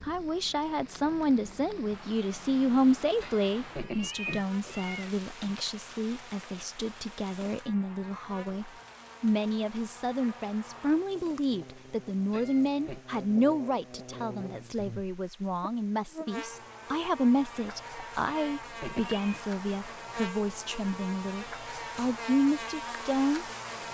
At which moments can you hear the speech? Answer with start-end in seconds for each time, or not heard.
0.0-23.4.